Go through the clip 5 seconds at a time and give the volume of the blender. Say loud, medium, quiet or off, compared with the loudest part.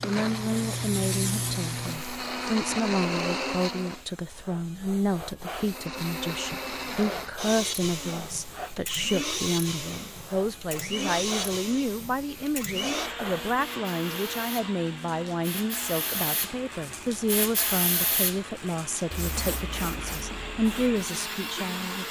loud, loud, loud, medium, loud.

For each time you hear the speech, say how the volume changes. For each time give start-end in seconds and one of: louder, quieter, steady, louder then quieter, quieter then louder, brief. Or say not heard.
0.0-22.0 steady.